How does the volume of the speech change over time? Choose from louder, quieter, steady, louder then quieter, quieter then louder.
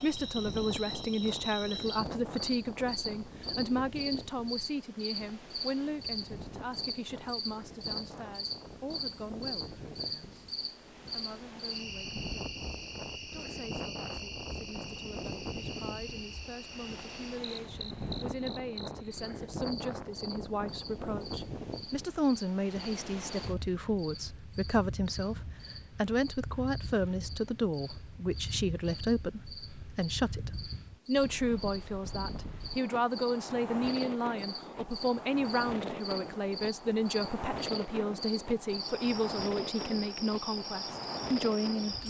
quieter then louder.